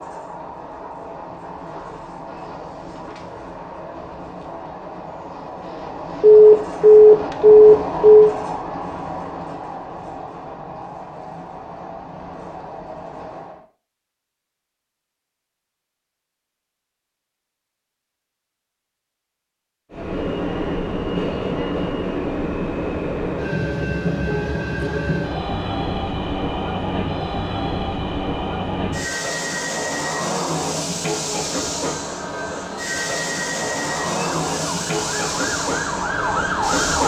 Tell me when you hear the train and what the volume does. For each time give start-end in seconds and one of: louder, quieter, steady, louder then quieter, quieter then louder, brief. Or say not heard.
0.0-13.7 louder then quieter
19.9-37.0 steady.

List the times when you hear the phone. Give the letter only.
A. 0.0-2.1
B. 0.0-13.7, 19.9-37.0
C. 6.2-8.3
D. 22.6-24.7
C.